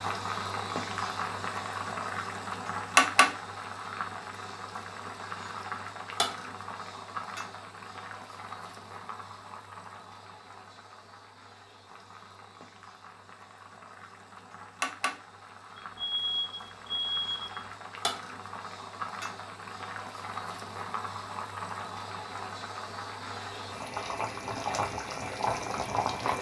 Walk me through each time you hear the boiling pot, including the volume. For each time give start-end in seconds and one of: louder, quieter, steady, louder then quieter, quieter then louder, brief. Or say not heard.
0.0-26.3 quieter then louder.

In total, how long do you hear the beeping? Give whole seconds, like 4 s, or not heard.
2 s.